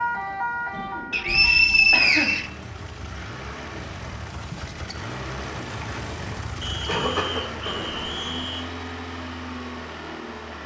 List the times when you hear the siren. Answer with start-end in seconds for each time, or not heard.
0.0-2.0.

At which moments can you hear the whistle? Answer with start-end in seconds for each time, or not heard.
1.1-2.5, 6.6-8.7.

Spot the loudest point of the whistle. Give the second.
2 s.